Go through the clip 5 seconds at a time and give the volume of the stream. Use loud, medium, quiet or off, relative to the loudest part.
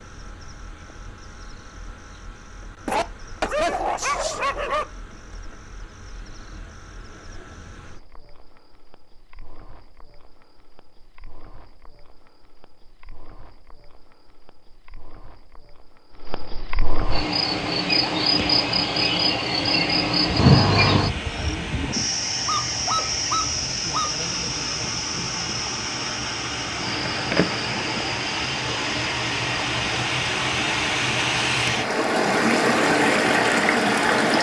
off, off, off, quiet, quiet, medium, loud.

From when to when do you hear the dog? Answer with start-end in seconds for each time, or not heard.
2.9-4.8, 22.4-24.1.